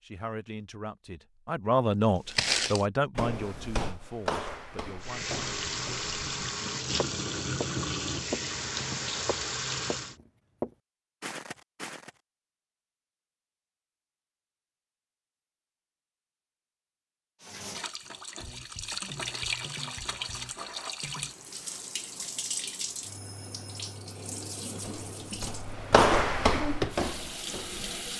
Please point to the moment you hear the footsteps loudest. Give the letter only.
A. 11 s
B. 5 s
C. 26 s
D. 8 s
C.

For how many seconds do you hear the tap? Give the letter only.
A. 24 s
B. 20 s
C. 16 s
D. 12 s
C.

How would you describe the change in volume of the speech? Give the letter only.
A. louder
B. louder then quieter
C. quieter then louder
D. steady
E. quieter
B.